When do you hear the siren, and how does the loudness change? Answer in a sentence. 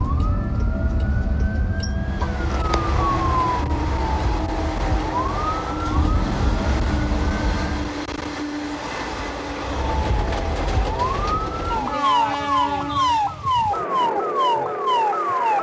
You can hear the siren from 0.0 to 8.0 s, at a steady volume; and from 9.7 to 15.5 s, getting louder.